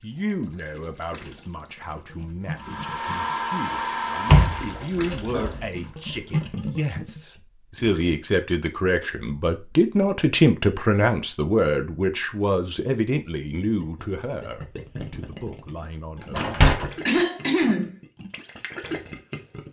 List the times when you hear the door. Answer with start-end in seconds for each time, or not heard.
4.2-5.7, 16.3-16.9.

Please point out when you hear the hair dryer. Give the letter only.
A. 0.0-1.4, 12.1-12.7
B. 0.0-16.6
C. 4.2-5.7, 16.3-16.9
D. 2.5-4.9
D.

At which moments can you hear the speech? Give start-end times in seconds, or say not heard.
0.0-16.6.